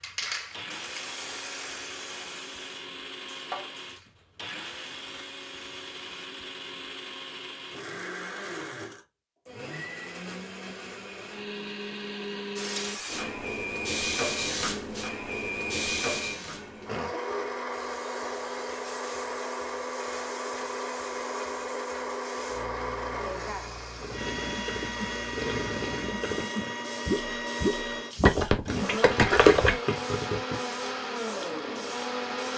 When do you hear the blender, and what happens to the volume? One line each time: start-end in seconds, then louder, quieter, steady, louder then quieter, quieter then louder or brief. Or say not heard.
0.0-32.5 louder.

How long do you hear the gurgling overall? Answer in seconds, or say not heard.
7 s.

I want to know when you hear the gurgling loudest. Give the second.
29 s.